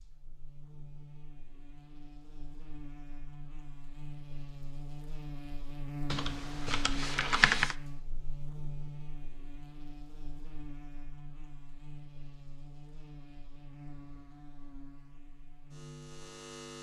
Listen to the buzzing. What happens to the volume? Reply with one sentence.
The loudness of the buzzing goes up, then down.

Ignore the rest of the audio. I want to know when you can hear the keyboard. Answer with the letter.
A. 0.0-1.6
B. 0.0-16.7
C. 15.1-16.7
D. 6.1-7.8
D.